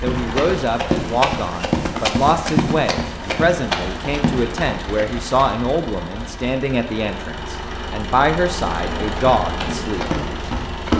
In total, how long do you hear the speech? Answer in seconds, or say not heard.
10 s.